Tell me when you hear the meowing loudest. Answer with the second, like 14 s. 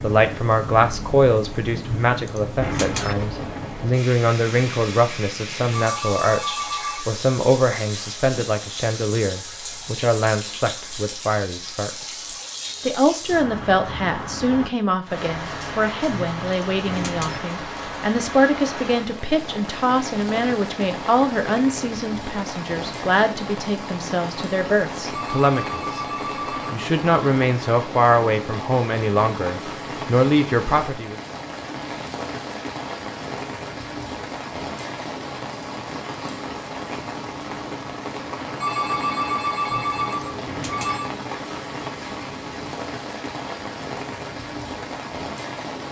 3 s.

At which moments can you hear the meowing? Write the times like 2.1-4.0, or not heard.
1.8-3.1, 16.2-17.4, 39.6-41.0.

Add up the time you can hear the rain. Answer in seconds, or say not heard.
46 s.